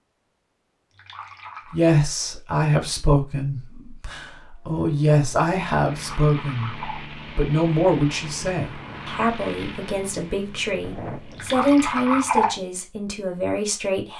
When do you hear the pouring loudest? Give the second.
12 s.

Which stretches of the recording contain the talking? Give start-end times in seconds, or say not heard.
1.7-14.1.